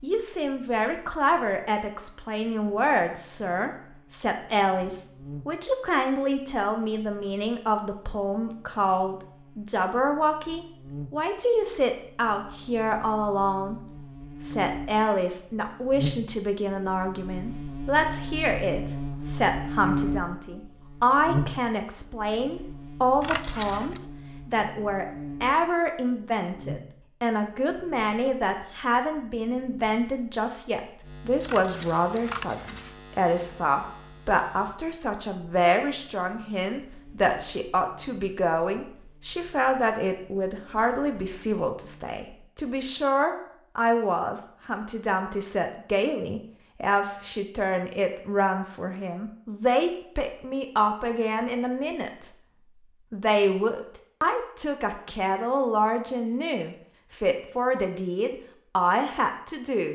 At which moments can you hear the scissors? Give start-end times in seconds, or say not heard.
23.2-24.0, 31.4-33.0.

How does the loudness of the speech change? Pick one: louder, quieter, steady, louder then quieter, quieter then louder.
steady.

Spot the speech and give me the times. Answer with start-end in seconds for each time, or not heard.
0.0-13.8, 14.4-52.3, 53.1-59.9.